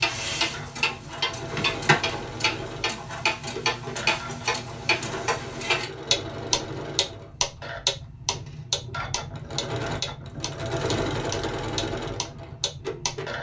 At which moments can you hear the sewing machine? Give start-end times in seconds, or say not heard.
0.0-13.3.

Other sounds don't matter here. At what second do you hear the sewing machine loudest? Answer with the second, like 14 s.
11 s.